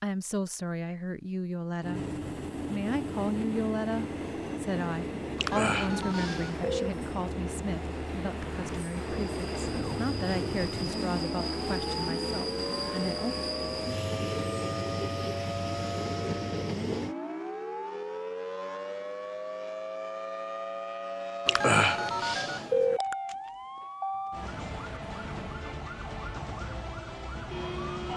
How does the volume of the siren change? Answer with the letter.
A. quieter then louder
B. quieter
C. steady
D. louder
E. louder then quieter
C.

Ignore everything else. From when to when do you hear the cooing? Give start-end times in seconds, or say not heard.
not heard.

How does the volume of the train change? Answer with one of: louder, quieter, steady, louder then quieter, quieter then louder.
steady.